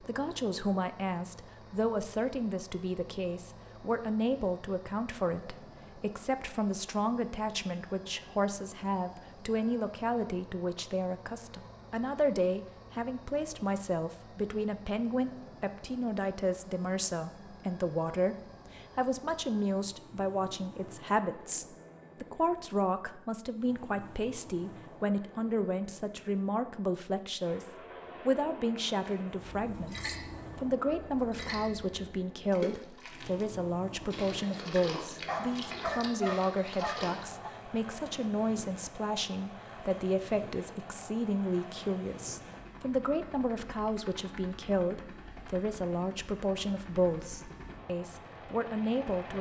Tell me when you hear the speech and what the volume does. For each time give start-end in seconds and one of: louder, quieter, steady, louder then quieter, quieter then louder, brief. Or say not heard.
0.0-49.3 steady.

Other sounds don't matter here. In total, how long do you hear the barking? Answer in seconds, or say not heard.
2 s.